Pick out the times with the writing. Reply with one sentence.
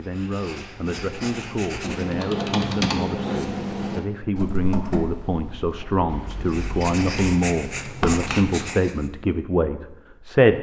You can hear the writing from 0.0 to 2.3 s and from 6.2 to 9.1 s.